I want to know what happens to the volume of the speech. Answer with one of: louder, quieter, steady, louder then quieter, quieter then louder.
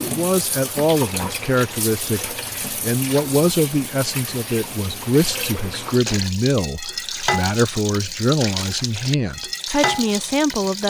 steady.